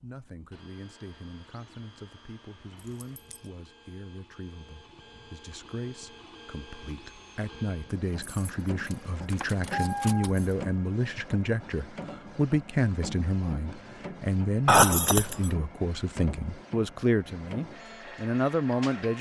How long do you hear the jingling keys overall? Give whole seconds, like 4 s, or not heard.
4 s.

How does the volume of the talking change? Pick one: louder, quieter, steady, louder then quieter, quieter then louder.
louder.